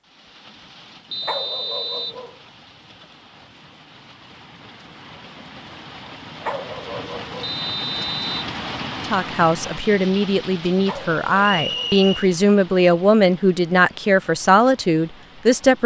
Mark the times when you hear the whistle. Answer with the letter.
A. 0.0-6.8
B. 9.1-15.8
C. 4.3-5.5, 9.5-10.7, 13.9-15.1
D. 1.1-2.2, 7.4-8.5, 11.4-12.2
D.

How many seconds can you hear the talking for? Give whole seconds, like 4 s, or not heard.
7 s.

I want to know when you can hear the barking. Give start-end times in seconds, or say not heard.
1.2-2.4, 6.4-7.5, 10.8-12.0.